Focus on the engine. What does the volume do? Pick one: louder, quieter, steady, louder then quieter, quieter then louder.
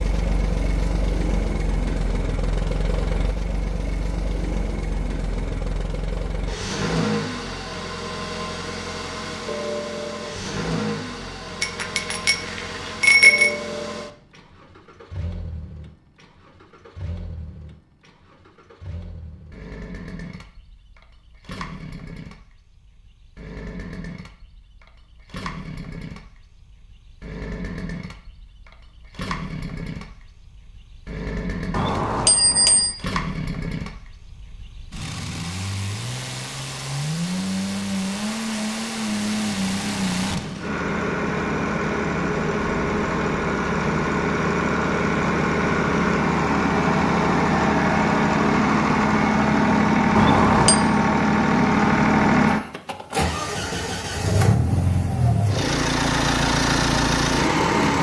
quieter then louder.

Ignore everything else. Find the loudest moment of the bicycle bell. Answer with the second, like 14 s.
13 s.